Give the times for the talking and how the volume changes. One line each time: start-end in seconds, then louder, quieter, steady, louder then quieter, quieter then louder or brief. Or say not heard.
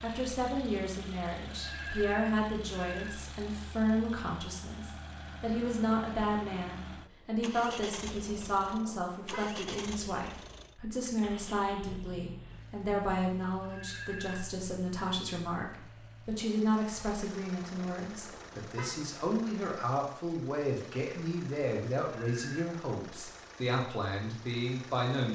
0.0-25.2 steady.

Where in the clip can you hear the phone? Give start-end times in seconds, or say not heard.
1.5-3.2, 13.6-14.4, 22.1-22.6.